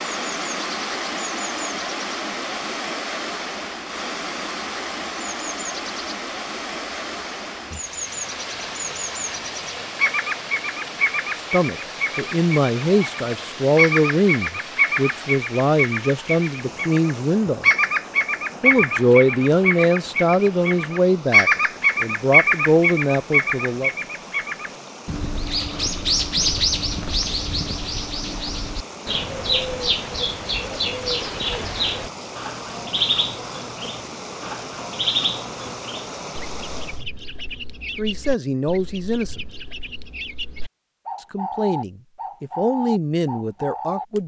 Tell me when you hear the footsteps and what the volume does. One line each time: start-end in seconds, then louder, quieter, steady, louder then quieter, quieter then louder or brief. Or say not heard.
not heard.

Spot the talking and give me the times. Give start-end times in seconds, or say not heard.
11.5-17.6, 18.6-23.9, 38.0-39.5, 41.2-44.2.